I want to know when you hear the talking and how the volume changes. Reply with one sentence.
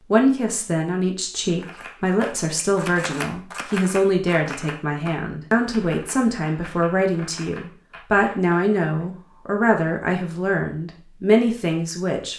You can hear the talking from 0.1 to 12.3 s, at a steady volume.